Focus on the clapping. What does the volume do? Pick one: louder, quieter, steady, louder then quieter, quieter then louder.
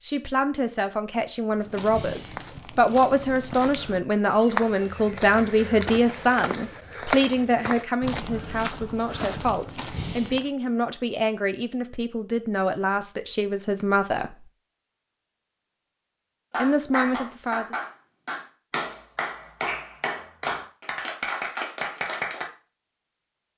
steady.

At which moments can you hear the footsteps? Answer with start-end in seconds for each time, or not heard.
1.5-10.5.